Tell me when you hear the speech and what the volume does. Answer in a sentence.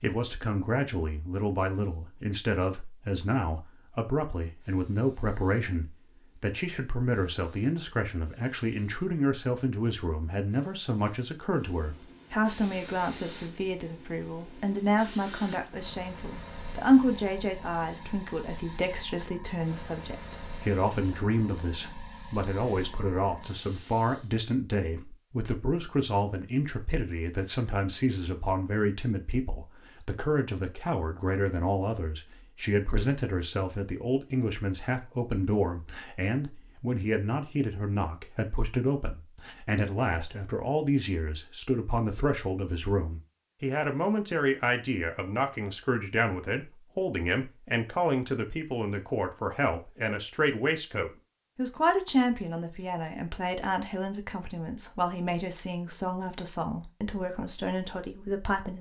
The speech can be heard from 0.0 to 58.7 s, at a steady volume.